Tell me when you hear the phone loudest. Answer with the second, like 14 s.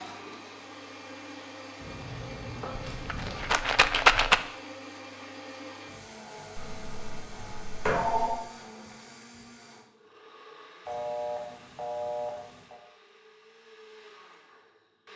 8 s.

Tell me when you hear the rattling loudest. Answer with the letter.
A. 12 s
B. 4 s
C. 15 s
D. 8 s
B.